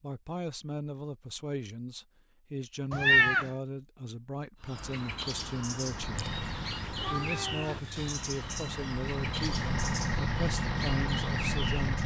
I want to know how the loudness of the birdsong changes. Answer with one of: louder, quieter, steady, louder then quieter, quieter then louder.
steady.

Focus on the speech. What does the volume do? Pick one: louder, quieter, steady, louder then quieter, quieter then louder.
steady.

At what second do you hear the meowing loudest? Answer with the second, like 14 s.
3 s.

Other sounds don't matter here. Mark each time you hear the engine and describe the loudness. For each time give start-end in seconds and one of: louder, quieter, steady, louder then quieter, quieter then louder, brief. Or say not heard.
5.8-12.0 quieter then louder.